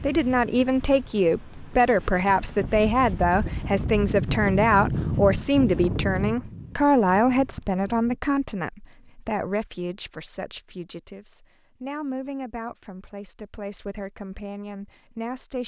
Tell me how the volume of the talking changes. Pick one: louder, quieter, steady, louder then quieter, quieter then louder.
quieter.